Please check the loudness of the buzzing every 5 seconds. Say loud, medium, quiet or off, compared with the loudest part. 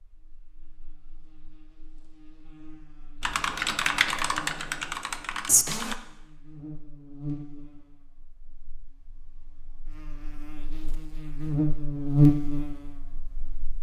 quiet, quiet, loud.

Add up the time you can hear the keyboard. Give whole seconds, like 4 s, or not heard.
3 s.